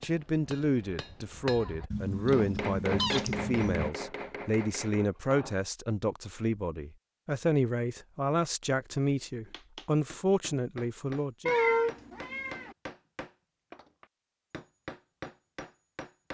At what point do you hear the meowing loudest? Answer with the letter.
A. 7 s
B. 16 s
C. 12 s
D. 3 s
C.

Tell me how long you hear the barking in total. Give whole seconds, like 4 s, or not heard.
not heard.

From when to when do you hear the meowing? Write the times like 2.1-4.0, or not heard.
1.9-3.9, 11.4-12.8.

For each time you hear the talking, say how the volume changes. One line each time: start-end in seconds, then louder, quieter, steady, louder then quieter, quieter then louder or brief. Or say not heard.
0.0-11.5 steady.